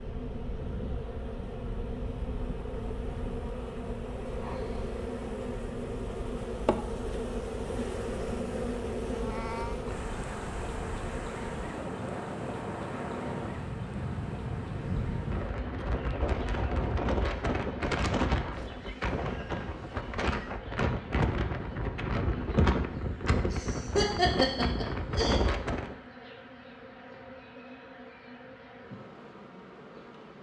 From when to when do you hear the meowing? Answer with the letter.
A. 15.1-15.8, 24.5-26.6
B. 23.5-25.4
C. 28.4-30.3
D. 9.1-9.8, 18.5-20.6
D.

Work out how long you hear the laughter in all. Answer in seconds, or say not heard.
2 s.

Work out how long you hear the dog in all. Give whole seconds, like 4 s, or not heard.
not heard.